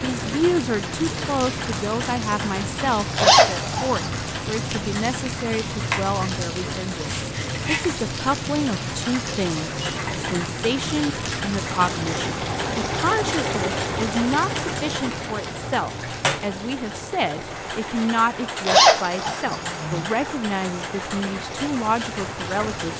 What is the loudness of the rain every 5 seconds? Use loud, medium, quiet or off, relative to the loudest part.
loud, loud, loud, medium, medium.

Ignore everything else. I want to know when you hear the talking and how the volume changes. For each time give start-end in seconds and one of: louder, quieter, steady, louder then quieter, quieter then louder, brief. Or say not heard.
0.0-22.9 steady.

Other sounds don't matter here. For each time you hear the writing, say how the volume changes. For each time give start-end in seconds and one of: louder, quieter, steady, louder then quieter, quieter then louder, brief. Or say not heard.
not heard.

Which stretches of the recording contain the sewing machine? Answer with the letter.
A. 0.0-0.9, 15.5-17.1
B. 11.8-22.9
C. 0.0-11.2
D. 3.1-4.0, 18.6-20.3
B.